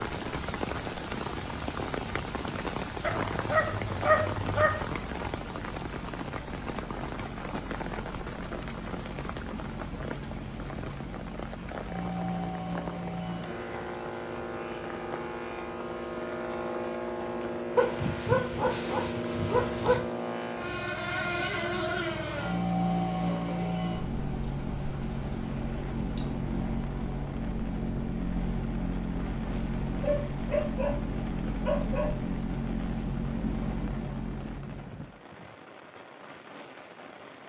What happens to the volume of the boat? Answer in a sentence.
The volume of the boat goes up.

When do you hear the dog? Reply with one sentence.
The dog can be heard from 3.0 to 4.8 s, from 17.8 to 20.1 s and from 30.0 to 32.1 s.